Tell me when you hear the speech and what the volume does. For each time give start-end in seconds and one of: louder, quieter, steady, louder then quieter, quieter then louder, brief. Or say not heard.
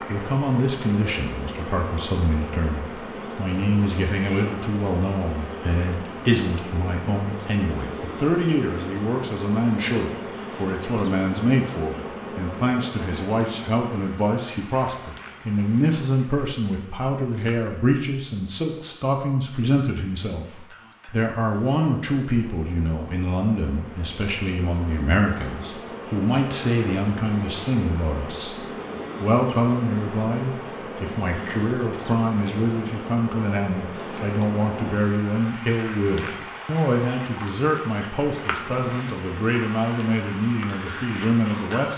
0.1-41.9 steady.